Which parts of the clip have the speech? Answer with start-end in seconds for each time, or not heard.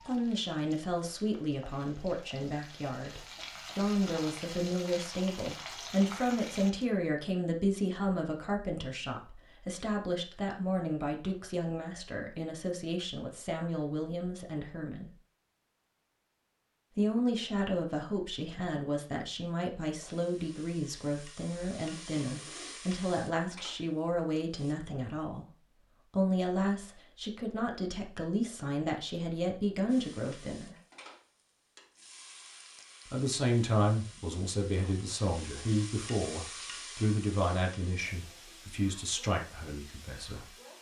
0.0-15.2, 16.9-30.8, 33.0-40.5.